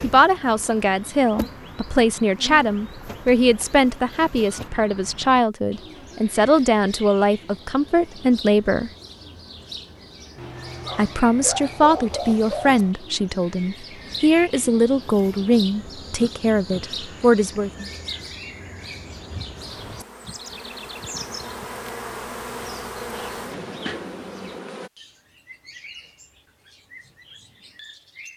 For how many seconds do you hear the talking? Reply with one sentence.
You can hear the talking for 16 seconds altogether.